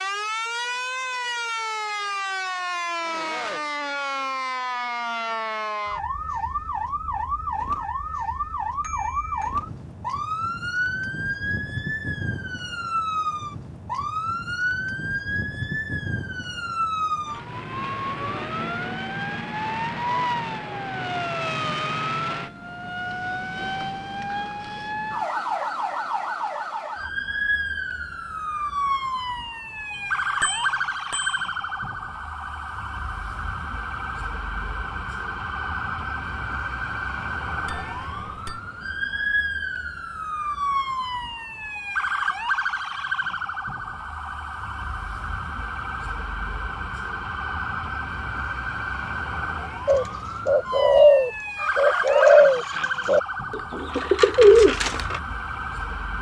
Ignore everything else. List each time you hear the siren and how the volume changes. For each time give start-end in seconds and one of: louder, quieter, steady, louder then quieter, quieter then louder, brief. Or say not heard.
0.0-56.1 steady.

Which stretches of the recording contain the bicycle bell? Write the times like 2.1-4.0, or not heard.
8.8-9.5, 29.9-31.9, 37.6-38.6.